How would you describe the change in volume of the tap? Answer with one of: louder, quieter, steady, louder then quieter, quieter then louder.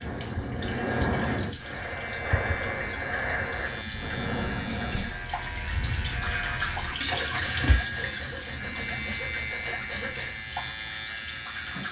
louder then quieter.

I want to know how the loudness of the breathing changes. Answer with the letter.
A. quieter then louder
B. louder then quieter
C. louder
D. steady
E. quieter
E.